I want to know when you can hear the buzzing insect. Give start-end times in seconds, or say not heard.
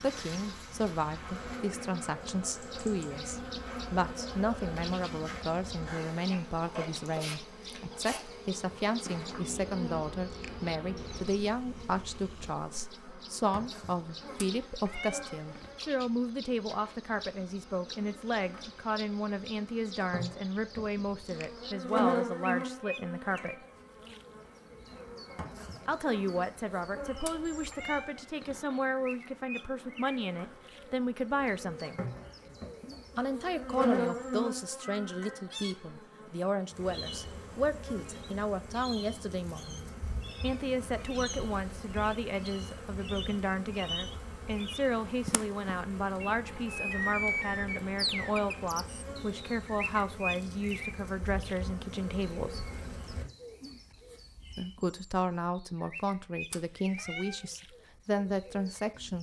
0.0-53.2.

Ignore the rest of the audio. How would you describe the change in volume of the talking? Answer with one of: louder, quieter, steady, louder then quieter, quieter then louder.
steady.